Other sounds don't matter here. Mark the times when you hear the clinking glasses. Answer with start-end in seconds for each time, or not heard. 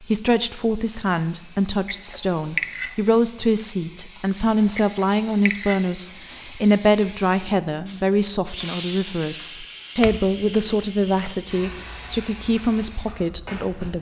1.9-3.0, 4.8-5.8, 10.0-11.3.